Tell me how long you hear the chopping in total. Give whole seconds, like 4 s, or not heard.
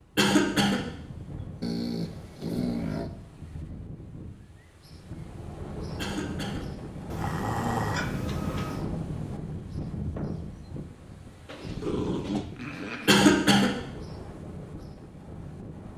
not heard.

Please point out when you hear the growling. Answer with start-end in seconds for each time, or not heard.
1.6-3.1, 7.1-8.8, 11.4-13.2.